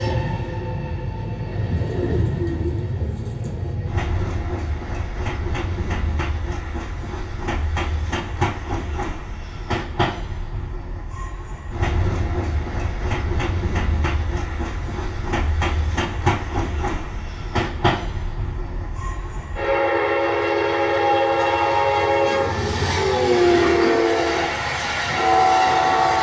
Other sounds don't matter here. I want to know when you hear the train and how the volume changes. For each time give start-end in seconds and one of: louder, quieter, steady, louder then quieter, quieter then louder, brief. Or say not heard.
0.0-26.1 louder.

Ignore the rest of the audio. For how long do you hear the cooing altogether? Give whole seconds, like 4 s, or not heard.
4 s.